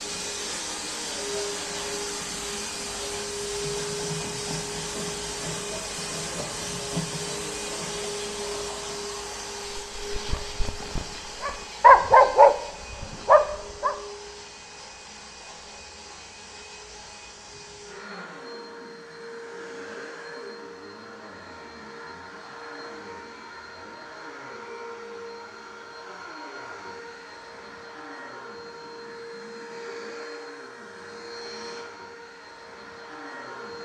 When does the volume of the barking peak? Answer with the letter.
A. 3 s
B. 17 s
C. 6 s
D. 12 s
D.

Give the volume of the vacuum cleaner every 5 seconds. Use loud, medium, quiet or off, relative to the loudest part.
loud, loud, medium, medium, medium, medium, medium.